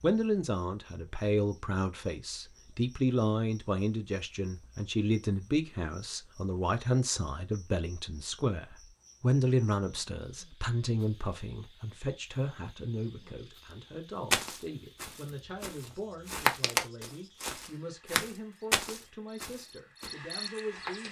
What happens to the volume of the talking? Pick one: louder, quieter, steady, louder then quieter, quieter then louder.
quieter.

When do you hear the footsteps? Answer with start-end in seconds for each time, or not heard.
14.3-21.0.